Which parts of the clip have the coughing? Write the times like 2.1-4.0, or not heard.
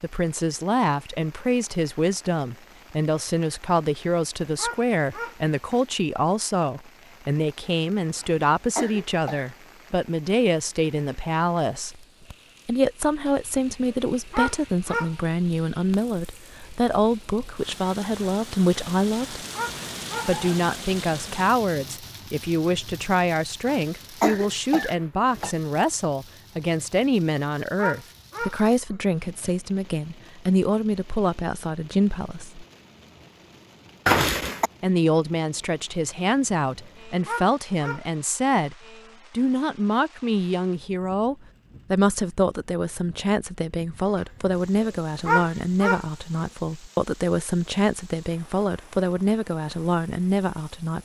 8.2-9.5, 23.6-25.6, 34.0-34.7.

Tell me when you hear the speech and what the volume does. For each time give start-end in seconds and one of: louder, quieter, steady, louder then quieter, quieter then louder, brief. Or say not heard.
0.0-12.0 steady
12.7-19.4 steady
20.2-32.6 steady
34.8-50.9 steady.